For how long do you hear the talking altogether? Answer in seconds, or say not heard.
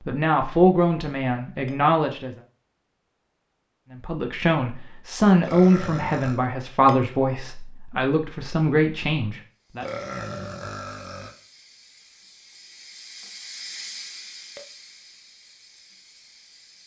8 s.